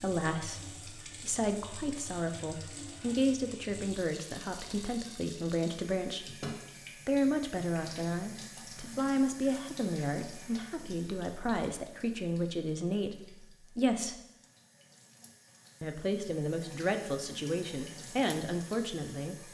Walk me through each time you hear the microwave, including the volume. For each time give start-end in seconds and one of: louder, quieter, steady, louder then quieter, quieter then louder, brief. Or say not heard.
not heard.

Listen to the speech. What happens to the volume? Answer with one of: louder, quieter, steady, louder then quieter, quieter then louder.
steady.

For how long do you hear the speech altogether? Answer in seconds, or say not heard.
18 s.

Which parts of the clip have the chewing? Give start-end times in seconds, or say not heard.
not heard.